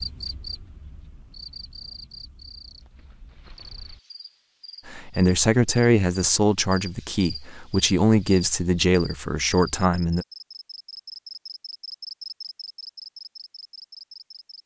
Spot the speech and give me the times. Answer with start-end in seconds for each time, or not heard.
4.8-10.2.